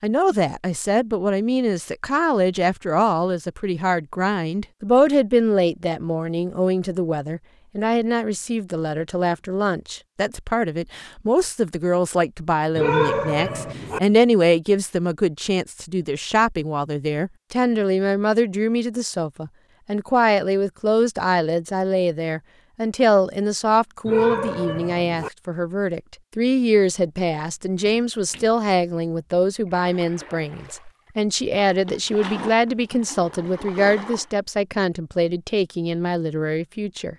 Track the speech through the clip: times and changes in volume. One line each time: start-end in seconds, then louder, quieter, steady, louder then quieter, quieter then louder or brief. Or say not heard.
0.0-37.1 steady.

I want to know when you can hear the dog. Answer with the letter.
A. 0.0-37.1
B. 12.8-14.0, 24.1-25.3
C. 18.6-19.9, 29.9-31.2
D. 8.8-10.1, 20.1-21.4
B.